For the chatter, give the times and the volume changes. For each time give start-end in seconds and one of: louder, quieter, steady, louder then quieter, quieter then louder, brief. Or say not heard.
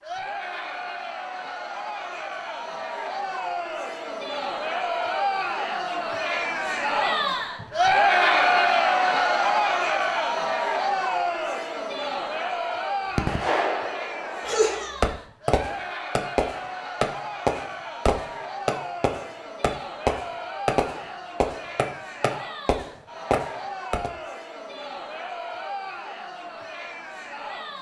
0.0-27.7 louder then quieter.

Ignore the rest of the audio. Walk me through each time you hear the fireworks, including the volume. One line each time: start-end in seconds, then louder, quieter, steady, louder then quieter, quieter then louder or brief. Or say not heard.
13.2-24.1 steady.